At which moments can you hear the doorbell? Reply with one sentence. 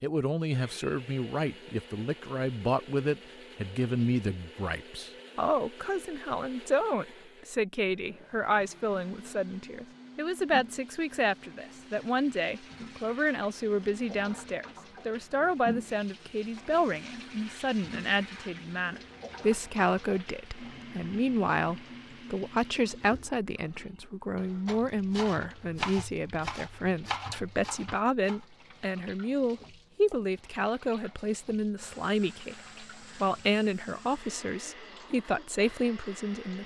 You can't hear the doorbell here.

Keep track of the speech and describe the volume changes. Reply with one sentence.
The volume of the speech stays about the same.